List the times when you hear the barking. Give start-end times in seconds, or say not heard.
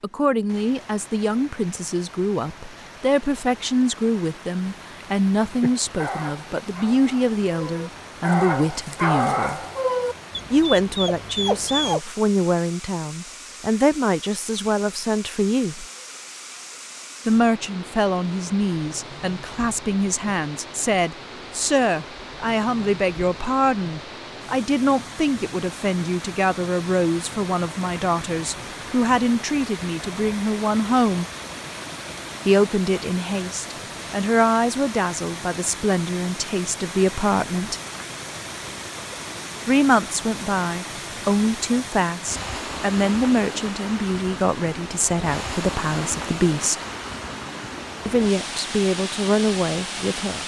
5.6-12.0.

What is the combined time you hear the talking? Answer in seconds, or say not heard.
44 s.